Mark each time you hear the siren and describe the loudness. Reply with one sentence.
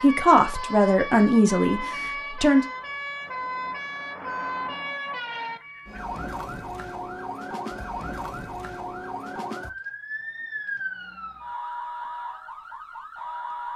You can hear the siren from 0.0 to 13.7 s, at a steady volume.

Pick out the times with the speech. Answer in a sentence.
The speech can be heard from 0.0 to 2.6 s.